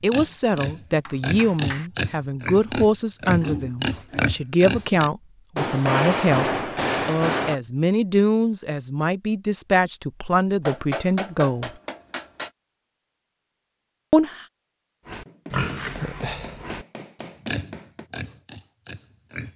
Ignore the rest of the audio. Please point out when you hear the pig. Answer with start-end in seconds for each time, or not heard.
0.0-5.1, 15.1-19.5.